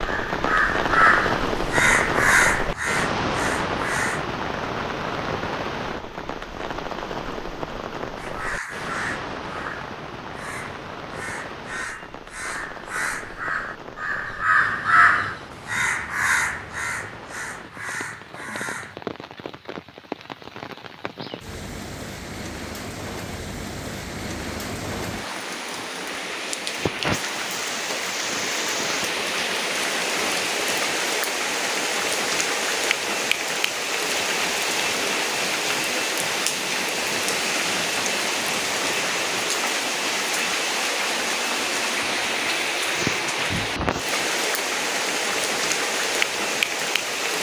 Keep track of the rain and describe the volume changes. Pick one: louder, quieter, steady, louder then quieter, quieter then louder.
quieter then louder.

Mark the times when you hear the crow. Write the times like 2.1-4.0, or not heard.
0.0-4.2, 8.2-19.0.